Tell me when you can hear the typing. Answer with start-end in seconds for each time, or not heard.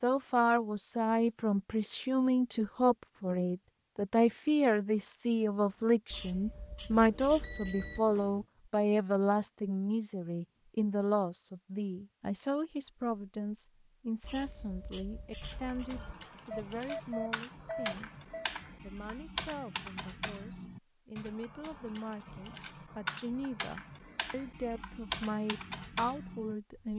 15.4-26.9.